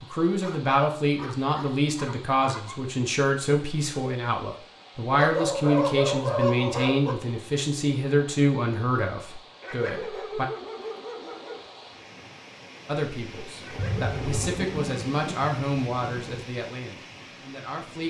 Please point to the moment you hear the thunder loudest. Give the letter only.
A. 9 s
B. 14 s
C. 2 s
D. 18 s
B.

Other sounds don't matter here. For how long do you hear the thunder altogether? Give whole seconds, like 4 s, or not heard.
3 s.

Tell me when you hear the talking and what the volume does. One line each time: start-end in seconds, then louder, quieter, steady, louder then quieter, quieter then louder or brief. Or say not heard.
0.0-10.4 steady
12.8-18.0 louder then quieter.